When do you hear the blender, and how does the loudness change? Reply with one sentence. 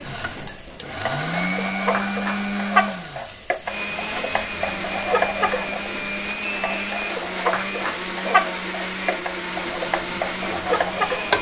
You can hear the blender from 0.0 to 11.3 s, at a steady volume.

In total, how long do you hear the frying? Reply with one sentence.
You can hear the frying for 11 seconds altogether.